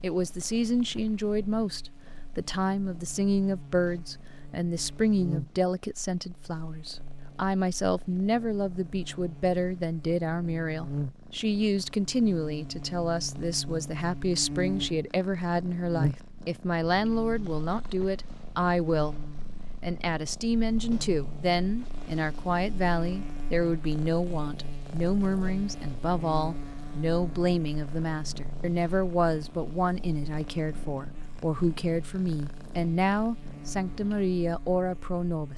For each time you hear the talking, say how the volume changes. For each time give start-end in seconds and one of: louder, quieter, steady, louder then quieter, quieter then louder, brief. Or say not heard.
0.0-35.5 steady.